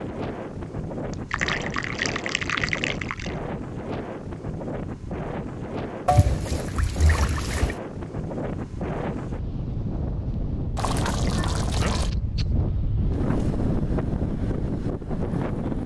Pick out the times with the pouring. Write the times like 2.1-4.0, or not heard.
1.3-3.4, 6.0-7.8, 10.8-12.1.